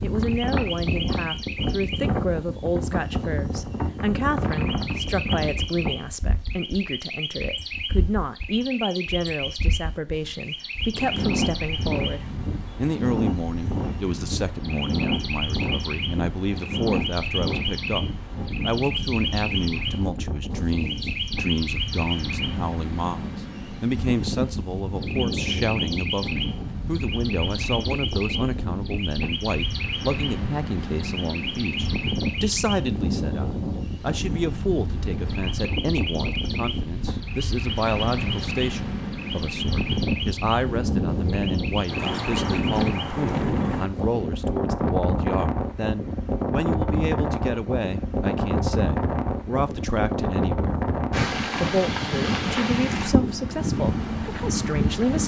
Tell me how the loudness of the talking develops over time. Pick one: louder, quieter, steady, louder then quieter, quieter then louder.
steady.